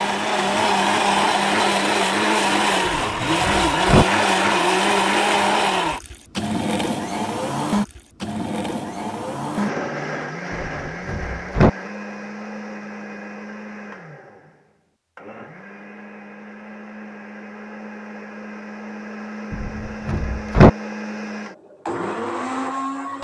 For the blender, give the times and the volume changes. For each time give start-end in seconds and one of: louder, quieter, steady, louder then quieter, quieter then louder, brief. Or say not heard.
0.0-23.2 quieter then louder.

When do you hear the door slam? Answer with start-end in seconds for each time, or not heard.
2.9-4.0, 10.5-11.7, 19.5-20.7.